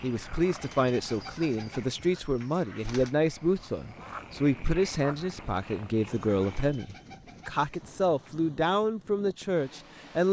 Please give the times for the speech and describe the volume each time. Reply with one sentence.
The speech can be heard from 0.0 to 10.2 s, at a steady volume.